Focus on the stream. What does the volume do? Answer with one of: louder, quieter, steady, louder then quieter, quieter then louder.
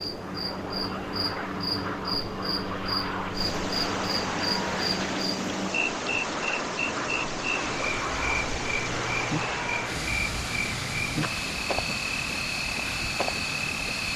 louder.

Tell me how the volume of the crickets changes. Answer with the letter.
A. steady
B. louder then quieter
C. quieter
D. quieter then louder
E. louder
A.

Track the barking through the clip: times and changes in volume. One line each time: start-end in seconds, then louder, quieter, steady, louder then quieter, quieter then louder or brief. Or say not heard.
not heard.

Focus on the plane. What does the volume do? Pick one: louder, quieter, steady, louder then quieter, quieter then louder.
steady.